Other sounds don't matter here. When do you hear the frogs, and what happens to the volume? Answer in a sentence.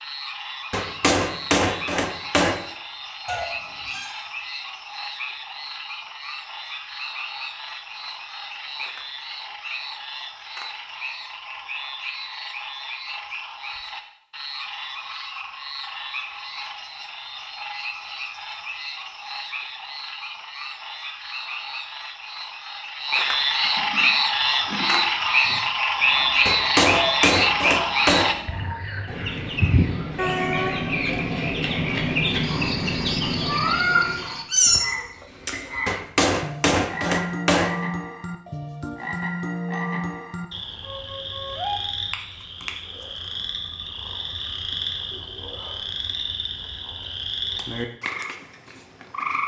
You can hear the frogs from 0.0 to 49.4 s, getting louder then quieter.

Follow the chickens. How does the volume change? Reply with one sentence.
The loudness of the chickens goes up.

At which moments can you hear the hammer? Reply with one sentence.
You can hear the hammer from 0.7 to 2.6 s, from 26.4 to 28.4 s and from 35.9 to 37.8 s.